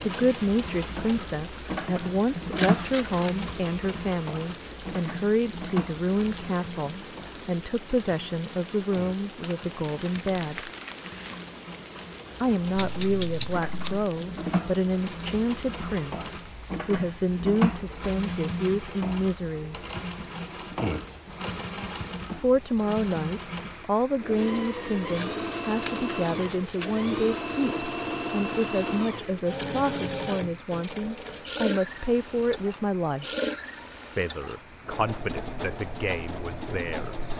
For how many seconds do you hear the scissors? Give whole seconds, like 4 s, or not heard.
4 s.